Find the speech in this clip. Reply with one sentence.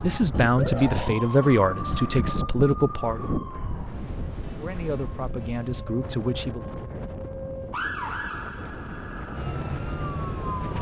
The speech can be heard from 0.0 to 3.3 s and from 4.6 to 6.7 s.